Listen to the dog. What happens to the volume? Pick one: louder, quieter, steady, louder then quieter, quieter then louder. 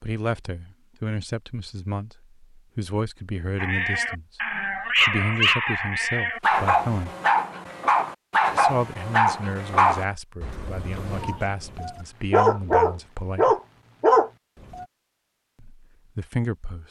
quieter then louder.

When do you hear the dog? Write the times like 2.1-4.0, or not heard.
3.5-14.8.